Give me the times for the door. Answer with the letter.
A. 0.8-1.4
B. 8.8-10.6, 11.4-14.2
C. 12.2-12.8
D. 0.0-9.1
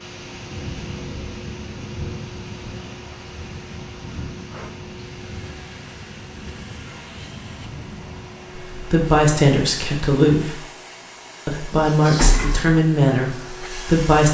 C.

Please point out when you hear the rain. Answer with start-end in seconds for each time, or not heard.
0.0-9.1.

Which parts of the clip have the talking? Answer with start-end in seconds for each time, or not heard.
8.8-10.6, 11.4-14.2.